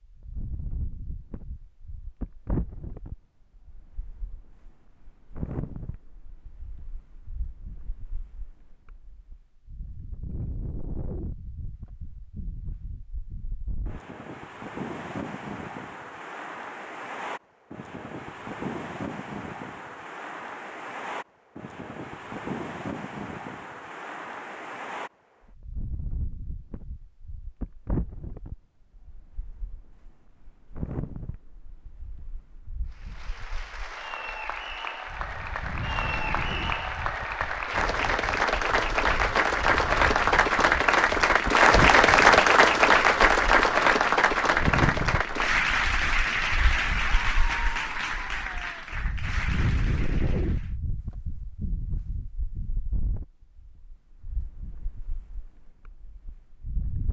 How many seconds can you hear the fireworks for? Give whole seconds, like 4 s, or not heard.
not heard.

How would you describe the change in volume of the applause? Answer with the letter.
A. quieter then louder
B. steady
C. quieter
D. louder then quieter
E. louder
D.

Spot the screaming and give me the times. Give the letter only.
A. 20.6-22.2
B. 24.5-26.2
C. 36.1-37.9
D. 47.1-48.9
D.